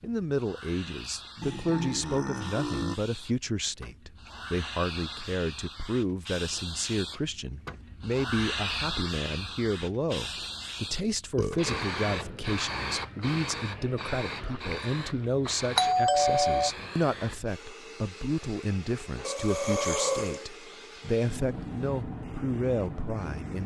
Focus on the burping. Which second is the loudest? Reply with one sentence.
The loudest moment of the burping is at 20 seconds.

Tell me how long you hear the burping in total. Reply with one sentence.
You can hear the burping for 3 seconds altogether.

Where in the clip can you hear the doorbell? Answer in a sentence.
You can hear the doorbell from 15.8 to 16.7 s.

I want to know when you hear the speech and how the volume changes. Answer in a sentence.
The speech can be heard from 0.0 to 23.6 s, at a steady volume.